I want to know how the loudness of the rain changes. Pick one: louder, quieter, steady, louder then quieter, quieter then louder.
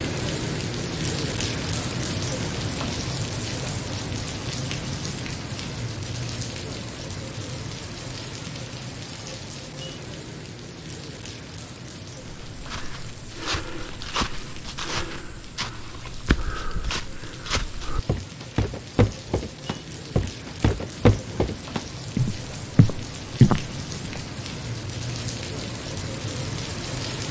quieter then louder.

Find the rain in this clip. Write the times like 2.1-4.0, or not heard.
0.0-27.2.